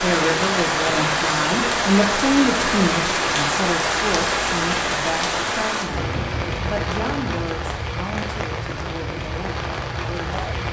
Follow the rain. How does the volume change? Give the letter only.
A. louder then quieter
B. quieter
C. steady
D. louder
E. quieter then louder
B.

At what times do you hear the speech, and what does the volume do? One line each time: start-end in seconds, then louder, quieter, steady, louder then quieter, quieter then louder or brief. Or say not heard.
0.0-10.6 quieter.